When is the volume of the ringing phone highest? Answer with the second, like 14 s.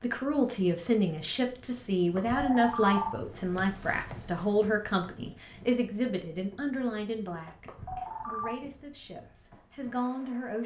3 s.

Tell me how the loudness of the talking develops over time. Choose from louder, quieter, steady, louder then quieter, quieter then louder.
quieter.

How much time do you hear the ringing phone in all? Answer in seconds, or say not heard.
2 s.